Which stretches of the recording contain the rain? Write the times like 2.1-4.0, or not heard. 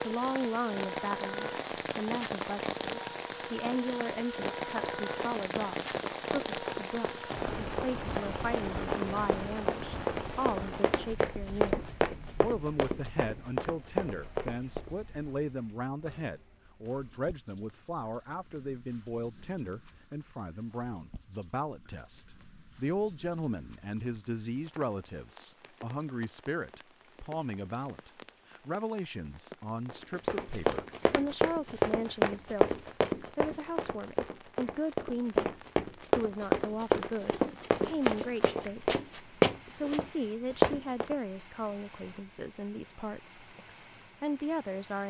0.0-45.0.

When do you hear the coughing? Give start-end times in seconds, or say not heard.
not heard.